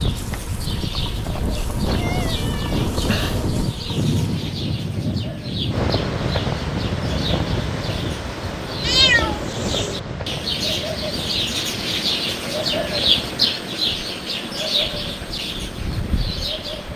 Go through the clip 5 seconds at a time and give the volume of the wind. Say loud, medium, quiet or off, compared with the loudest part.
loud, loud, medium, medium.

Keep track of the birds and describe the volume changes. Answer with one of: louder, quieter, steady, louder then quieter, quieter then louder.
louder.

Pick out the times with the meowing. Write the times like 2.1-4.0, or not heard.
1.1-3.5, 8.8-10.0.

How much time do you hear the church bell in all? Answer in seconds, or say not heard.
not heard.